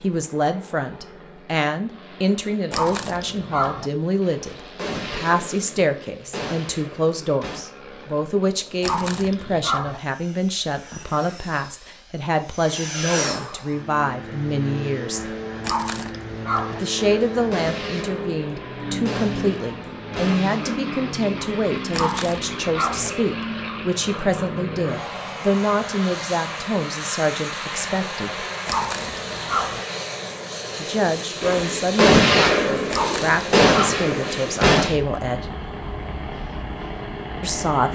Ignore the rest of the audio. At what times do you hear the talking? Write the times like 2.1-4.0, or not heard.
0.0-15.3, 16.7-28.4, 30.8-35.5, 37.4-37.9.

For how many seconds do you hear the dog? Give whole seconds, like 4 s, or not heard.
7 s.